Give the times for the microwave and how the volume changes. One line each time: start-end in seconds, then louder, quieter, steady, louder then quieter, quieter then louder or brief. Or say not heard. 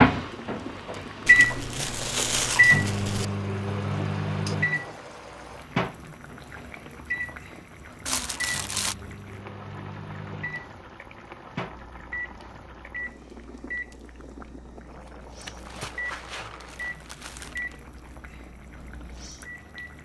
0.0-19.9 quieter.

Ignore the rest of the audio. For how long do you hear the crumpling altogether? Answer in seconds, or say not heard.
5 s.